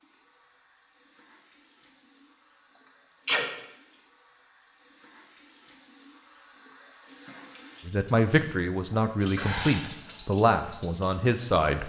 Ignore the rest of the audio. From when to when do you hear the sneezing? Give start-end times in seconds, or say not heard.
2.8-3.5, 8.9-9.8.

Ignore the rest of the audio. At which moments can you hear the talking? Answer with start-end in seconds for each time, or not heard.
7.8-11.8.